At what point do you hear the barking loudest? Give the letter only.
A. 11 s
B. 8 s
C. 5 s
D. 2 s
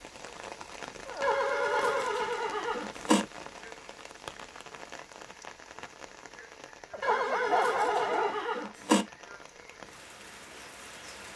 B.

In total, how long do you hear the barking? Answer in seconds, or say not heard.
3 s.